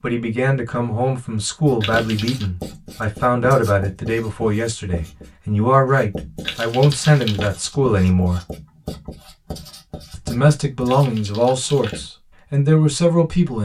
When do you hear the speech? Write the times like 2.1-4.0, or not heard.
0.0-8.4, 10.1-13.5.